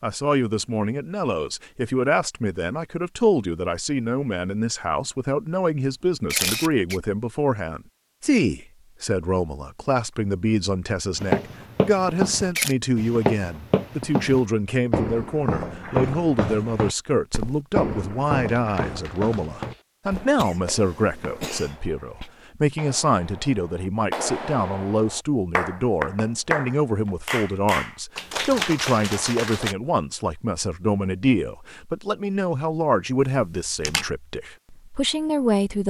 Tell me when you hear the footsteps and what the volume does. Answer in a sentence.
The footsteps can be heard from 11.2 to 21.6 s, getting quieter.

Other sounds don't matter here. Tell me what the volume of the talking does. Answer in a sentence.
The volume of the talking stays about the same.